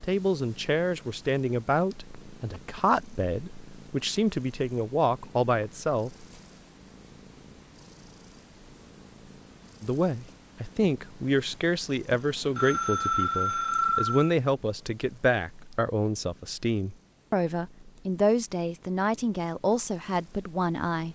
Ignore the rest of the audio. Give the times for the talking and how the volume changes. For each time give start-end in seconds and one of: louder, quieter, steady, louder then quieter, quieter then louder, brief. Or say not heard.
0.0-6.2 steady
9.8-21.1 steady.